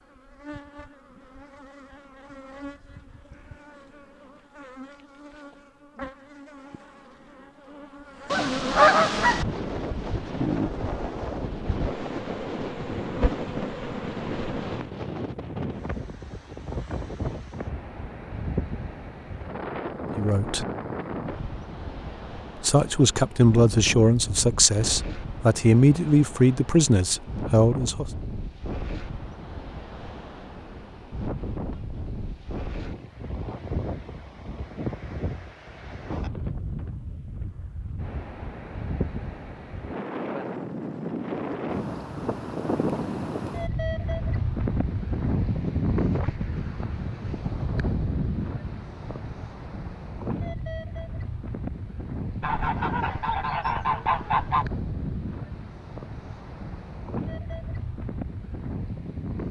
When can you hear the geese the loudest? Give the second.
9 s.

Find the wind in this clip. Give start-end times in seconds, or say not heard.
9.2-59.4.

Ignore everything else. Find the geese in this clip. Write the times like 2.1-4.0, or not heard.
8.3-9.4, 52.4-54.6.